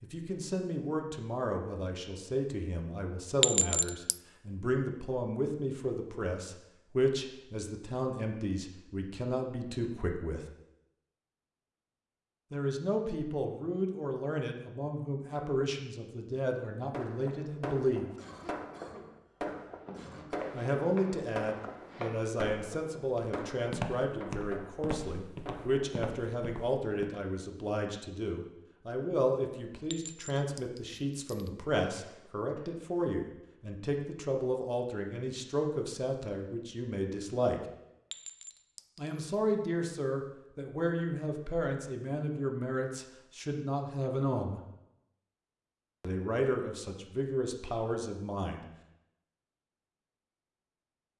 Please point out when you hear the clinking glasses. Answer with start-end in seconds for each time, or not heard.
3.4-4.2, 29.9-31.5, 38.1-39.2.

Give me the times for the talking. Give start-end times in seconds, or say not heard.
0.0-10.4, 12.5-18.1, 20.5-37.6, 39.0-44.6, 46.0-48.6.